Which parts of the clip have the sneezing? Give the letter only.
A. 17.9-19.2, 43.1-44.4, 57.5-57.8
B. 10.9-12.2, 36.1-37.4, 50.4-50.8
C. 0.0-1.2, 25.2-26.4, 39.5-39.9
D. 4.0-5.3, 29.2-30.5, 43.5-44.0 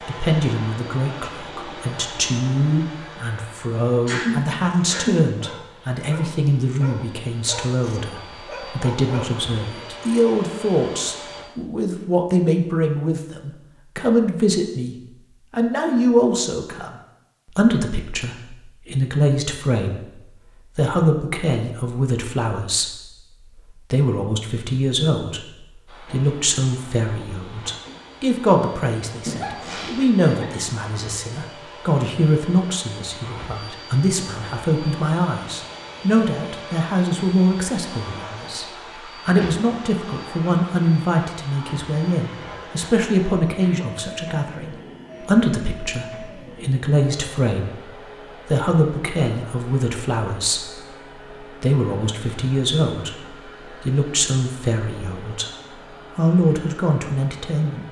D.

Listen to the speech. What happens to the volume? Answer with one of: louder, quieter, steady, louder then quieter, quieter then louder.
steady.